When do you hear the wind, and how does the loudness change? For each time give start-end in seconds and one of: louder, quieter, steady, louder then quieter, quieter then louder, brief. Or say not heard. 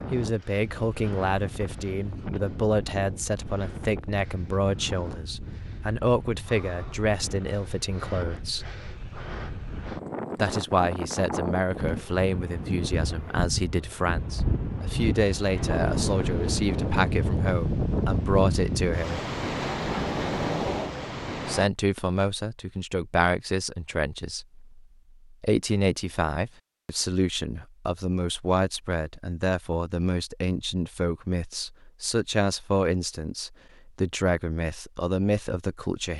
0.0-21.7 louder.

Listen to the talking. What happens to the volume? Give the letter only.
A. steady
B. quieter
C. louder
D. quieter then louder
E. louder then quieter
A.